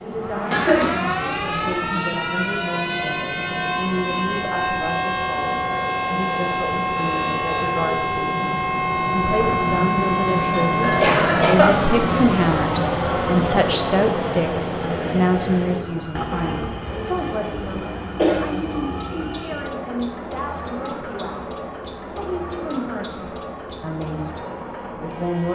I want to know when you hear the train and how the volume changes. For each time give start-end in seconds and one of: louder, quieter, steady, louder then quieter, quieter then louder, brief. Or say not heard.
0.0-25.4 louder then quieter.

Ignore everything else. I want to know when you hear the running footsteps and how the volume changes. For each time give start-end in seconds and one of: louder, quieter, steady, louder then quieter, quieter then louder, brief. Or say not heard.
not heard.